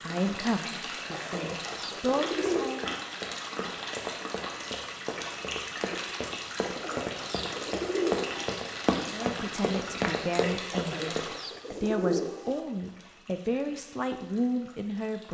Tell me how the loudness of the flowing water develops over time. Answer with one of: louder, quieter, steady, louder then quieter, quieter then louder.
quieter.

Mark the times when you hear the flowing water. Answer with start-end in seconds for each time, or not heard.
0.0-15.2.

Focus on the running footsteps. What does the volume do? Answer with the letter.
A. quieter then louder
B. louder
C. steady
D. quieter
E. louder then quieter
B.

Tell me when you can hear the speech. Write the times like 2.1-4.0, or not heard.
0.0-2.9, 9.1-15.2.